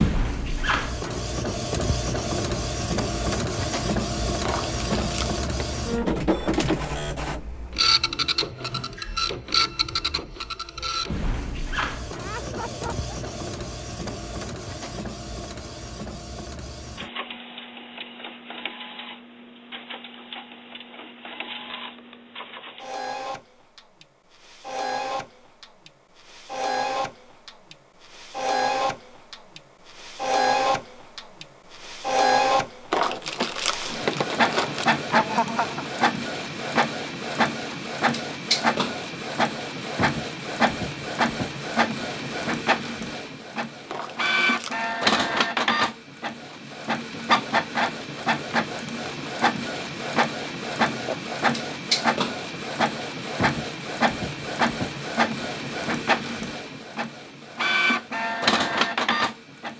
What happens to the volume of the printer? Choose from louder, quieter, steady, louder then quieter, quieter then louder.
quieter then louder.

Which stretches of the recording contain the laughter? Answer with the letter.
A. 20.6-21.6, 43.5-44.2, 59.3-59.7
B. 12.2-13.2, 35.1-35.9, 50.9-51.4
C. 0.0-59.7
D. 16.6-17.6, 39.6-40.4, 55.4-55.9
B.